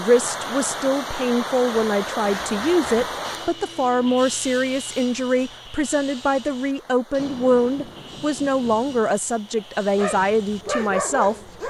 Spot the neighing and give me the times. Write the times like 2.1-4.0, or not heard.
not heard.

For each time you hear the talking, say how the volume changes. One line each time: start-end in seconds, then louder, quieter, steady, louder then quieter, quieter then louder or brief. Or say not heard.
0.0-11.3 steady.